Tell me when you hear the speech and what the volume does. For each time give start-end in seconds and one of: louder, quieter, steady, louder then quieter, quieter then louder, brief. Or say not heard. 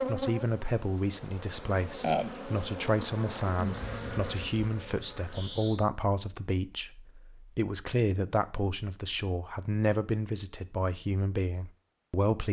0.1-12.4 steady.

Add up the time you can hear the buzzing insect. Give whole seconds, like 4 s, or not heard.
6 s.